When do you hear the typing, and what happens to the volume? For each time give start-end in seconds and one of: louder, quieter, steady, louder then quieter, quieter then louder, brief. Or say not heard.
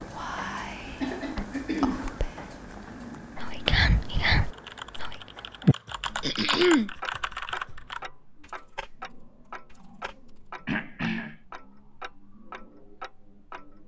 4.5-10.4 louder then quieter.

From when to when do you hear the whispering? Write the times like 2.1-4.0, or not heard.
0.0-5.2.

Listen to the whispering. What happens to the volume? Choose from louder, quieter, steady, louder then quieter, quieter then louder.
quieter then louder.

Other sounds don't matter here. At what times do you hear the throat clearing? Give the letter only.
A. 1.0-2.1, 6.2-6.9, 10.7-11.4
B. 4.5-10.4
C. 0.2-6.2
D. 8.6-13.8
A.